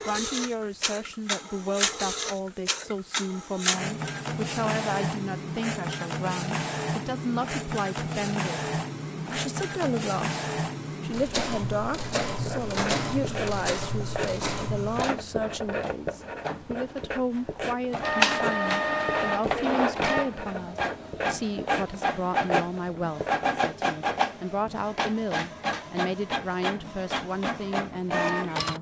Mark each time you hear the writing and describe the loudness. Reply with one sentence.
You can hear the writing from 12.3 to 23.4 s, at a steady volume.